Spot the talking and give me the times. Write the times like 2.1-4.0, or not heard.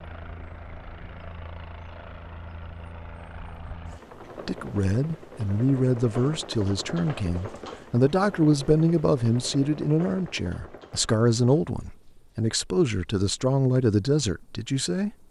4.5-15.1.